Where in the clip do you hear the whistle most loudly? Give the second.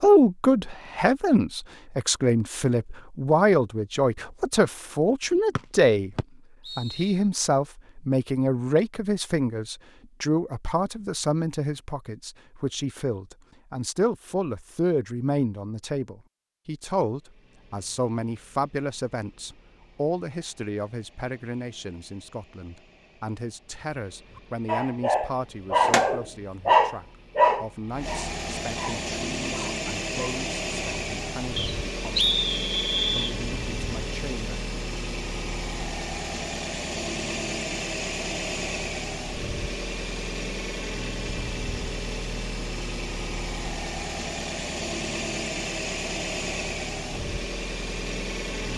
32 s.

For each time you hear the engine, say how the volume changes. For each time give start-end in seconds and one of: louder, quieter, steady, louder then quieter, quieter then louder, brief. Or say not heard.
17.1-48.7 louder.